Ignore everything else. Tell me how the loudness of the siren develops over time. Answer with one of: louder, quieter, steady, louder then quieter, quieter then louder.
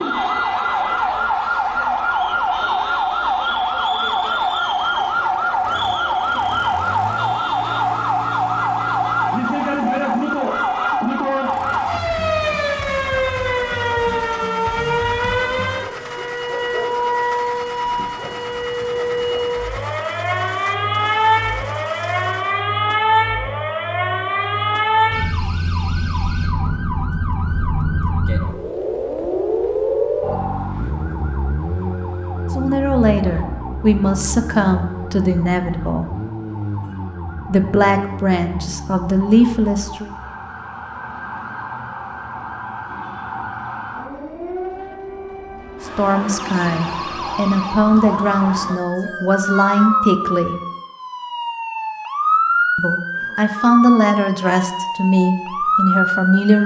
quieter then louder.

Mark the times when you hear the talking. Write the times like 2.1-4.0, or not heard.
32.5-36.1, 37.5-40.1, 45.9-50.5, 52.8-56.6.